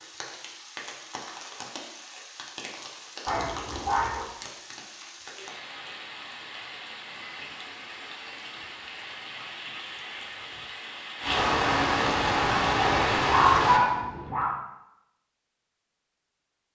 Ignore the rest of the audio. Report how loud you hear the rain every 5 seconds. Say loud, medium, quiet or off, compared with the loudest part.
quiet, quiet, loud, off.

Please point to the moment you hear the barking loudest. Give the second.
14 s.